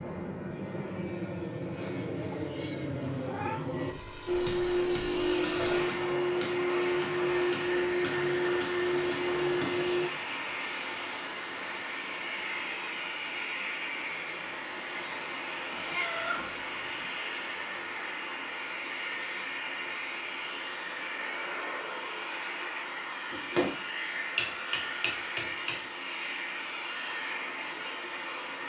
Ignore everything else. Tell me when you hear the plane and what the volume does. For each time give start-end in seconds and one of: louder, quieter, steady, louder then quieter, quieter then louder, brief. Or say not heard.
0.0-28.6 steady.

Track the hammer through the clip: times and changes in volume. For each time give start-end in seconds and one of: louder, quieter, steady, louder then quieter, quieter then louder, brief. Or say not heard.
4.2-10.1 steady
23.3-25.9 brief.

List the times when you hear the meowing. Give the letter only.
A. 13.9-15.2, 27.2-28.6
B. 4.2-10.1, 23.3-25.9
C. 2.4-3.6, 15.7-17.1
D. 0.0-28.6
C.